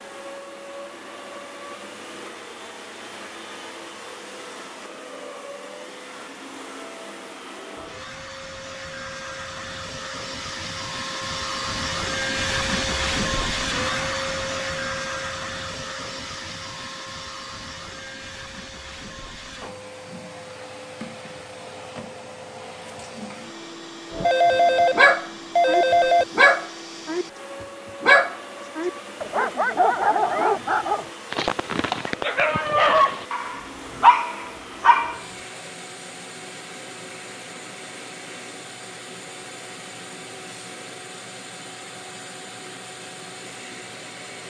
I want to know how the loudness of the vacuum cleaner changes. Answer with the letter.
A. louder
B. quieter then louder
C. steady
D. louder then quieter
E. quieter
D.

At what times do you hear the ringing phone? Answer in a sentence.
The ringing phone can be heard from 24.2 to 26.2 s.